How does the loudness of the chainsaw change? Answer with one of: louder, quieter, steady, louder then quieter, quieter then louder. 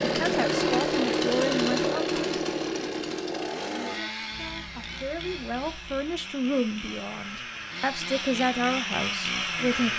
quieter then louder.